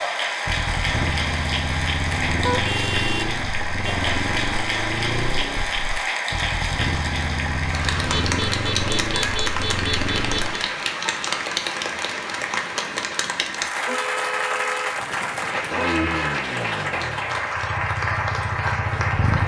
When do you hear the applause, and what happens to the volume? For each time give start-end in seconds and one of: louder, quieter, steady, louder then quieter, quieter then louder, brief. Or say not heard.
0.0-19.4 steady.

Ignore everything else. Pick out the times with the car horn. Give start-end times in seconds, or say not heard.
2.5-4.0, 8.1-10.6, 13.8-16.4.